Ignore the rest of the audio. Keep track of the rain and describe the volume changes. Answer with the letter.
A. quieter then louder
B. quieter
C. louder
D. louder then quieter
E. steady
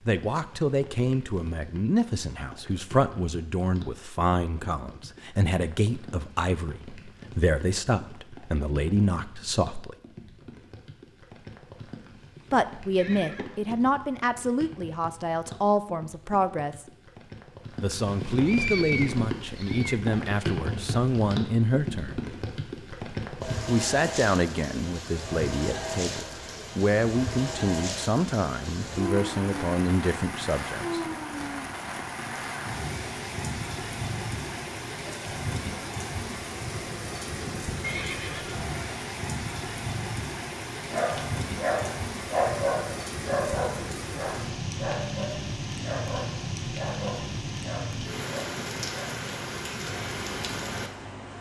C.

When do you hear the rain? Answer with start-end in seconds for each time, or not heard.
0.0-51.3.